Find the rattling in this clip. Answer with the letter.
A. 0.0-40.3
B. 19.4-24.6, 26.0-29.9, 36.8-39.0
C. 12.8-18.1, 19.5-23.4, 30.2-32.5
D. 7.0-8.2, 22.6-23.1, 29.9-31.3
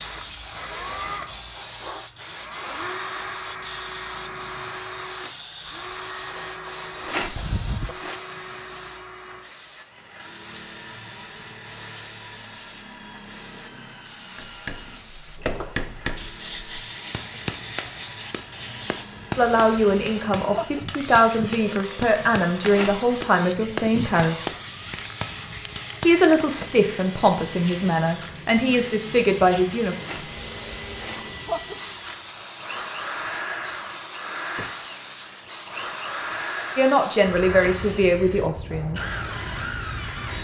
D.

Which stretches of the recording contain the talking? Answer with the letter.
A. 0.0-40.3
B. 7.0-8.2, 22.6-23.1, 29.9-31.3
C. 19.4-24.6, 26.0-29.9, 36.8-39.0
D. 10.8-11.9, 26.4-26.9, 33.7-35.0
C.